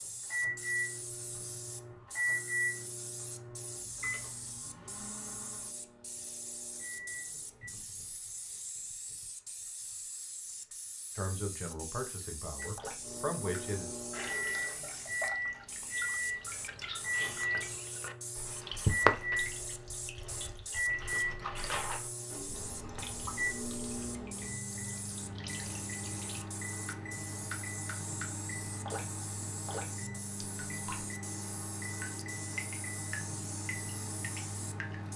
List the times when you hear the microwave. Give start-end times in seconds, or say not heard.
0.0-7.7, 12.6-35.1.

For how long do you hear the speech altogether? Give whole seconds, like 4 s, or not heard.
3 s.